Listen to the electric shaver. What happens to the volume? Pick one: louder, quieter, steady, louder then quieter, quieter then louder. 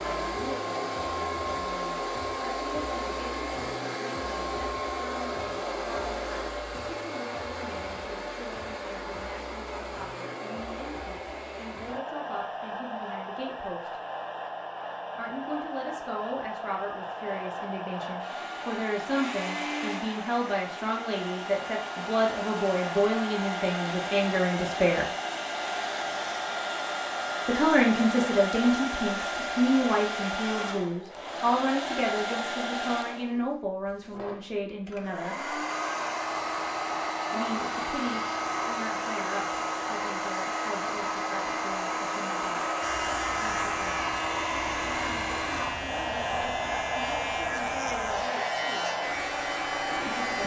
steady.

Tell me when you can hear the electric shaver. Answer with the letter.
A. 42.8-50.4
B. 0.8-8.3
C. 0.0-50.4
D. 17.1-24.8
A.